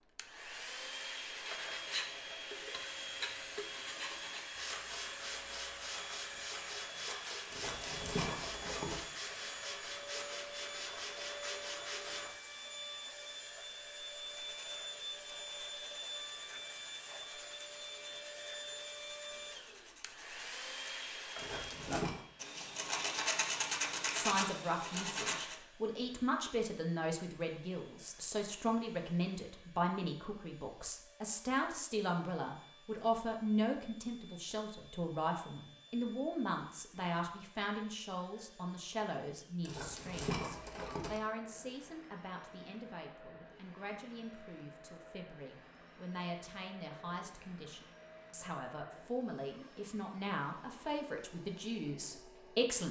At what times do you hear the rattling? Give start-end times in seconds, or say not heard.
7.5-9.0, 21.4-22.2, 39.6-41.2.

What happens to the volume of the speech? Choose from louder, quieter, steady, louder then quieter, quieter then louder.
quieter then louder.